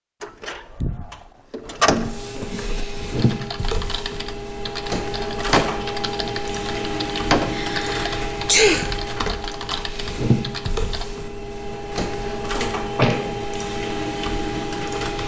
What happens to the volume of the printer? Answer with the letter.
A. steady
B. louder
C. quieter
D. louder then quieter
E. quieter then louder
A.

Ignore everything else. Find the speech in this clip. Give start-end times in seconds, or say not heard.
not heard.